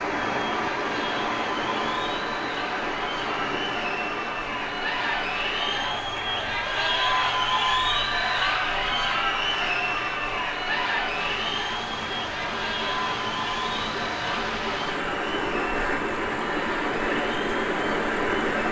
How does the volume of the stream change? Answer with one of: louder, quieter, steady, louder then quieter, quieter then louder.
quieter then louder.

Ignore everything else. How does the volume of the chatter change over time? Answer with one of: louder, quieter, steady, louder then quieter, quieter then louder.
louder then quieter.